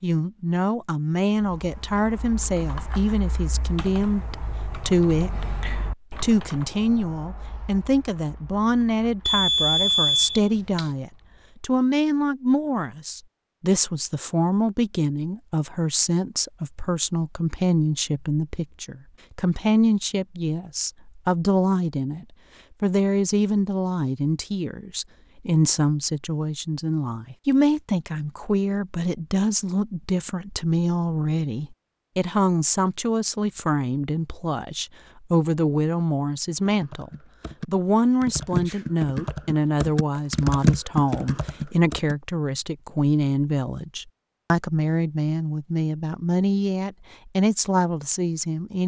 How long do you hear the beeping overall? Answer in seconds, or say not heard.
2 s.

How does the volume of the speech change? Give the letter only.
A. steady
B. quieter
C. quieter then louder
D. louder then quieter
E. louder
A.